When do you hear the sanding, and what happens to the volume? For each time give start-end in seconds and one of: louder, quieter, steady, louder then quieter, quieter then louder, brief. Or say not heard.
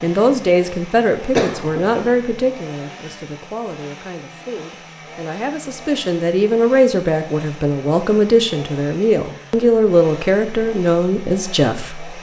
not heard.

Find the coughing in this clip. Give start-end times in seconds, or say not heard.
1.4-2.1.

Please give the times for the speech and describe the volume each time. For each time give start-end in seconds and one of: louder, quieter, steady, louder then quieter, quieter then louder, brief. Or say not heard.
0.0-12.1 quieter then louder.